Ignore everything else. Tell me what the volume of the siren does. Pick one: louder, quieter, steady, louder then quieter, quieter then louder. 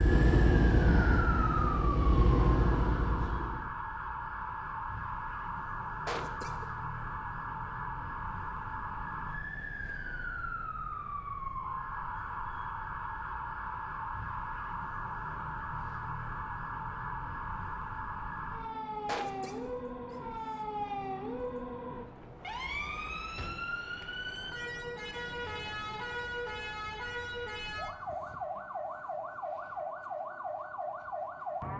steady.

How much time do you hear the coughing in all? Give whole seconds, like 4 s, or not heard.
2 s.